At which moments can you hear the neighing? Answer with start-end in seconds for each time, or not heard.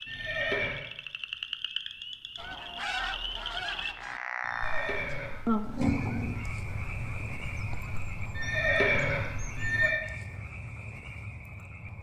0.1-0.8, 4.4-5.5, 8.3-10.0.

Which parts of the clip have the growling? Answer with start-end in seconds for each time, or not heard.
5.7-6.5.